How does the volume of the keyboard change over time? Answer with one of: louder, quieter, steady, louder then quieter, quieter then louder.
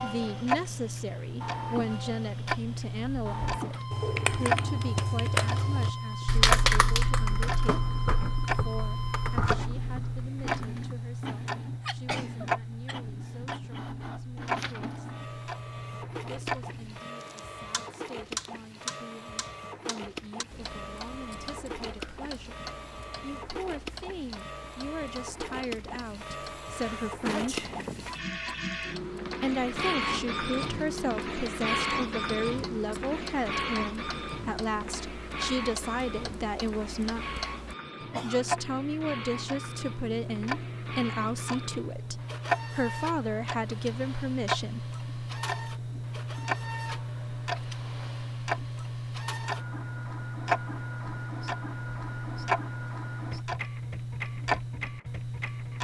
louder then quieter.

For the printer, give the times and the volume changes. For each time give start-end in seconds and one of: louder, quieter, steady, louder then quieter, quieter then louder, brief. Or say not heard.
0.0-55.7 louder then quieter.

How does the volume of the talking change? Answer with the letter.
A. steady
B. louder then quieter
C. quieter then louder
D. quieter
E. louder
C.